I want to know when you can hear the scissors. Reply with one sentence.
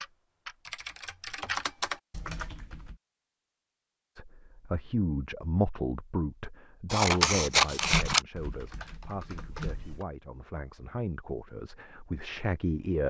The scissors can be heard from 6.9 to 8.2 s.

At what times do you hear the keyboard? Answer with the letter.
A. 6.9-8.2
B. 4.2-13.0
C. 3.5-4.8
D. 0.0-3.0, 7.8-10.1
D.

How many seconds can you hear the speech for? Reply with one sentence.
The speech can be heard for 9 seconds in total.